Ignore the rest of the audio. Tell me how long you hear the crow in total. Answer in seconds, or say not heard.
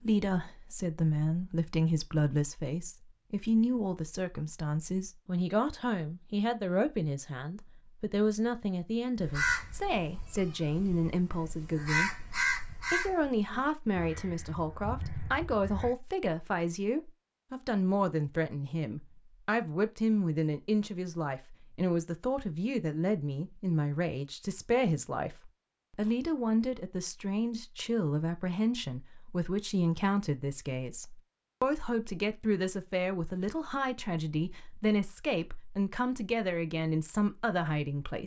7 s.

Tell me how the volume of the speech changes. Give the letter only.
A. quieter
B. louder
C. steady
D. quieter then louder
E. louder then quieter
C.